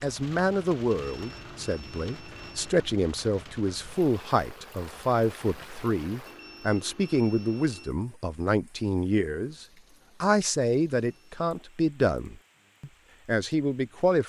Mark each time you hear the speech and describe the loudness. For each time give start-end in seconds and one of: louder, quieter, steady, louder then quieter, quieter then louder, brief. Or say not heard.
0.0-14.2 steady.